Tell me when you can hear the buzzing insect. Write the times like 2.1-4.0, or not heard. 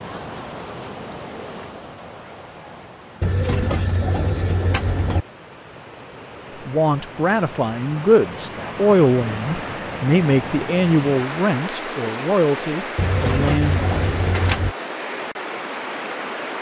0.0-1.9.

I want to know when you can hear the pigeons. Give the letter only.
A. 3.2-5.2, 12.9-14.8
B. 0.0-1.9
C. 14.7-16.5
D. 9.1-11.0
A.